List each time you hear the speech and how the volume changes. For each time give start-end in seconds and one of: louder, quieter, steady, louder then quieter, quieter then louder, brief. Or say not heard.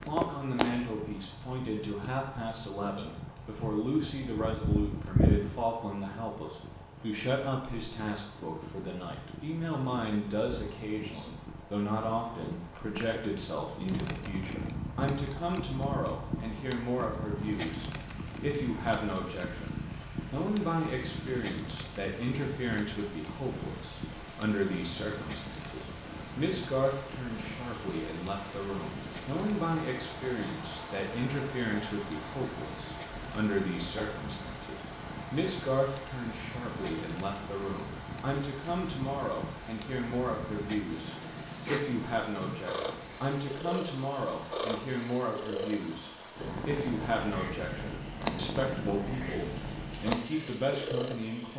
0.1-51.5 steady.